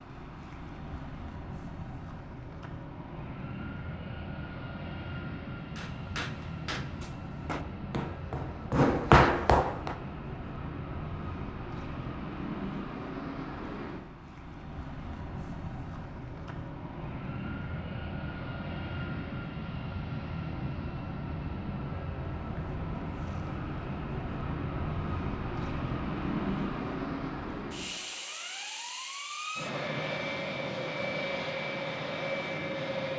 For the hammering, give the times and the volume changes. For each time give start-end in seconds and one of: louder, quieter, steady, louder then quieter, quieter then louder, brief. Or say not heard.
5.8-9.9 quieter then louder.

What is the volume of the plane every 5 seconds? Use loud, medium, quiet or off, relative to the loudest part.
medium, medium, medium, medium, loud, loud, loud.